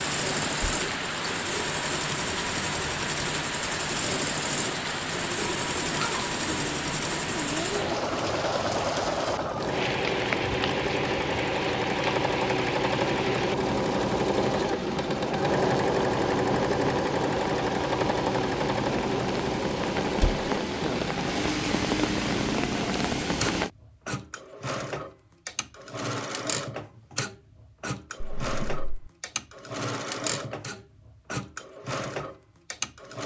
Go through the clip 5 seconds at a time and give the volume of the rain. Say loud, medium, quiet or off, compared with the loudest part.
loud, loud, medium, medium, loud, off, off.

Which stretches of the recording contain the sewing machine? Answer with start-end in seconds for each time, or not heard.
0.0-33.2.